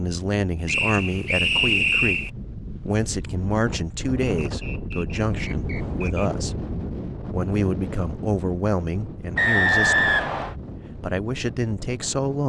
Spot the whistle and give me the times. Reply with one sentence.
The whistle can be heard from 0.7 to 2.3 s, from 4.4 to 6.3 s and from 9.3 to 10.6 s.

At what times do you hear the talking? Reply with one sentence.
The talking can be heard from 0.0 to 6.6 s, from 7.3 to 10.2 s and from 10.9 to 12.4 s.